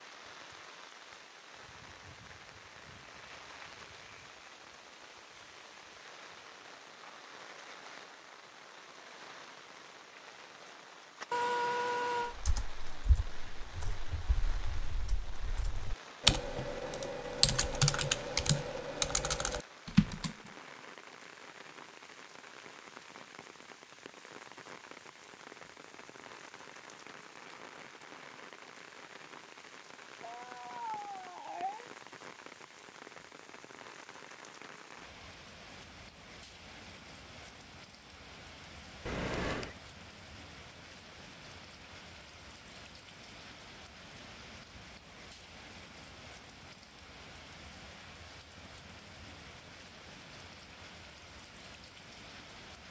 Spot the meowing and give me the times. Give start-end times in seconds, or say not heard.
11.3-12.3, 30.2-31.9, 39.0-39.8.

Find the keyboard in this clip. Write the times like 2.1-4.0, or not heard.
12.2-20.4.